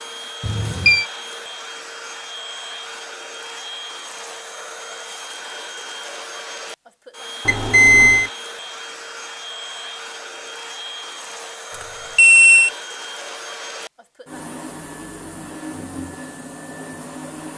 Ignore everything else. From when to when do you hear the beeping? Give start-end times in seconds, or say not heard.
0.4-1.1, 7.5-8.3, 12.2-12.7.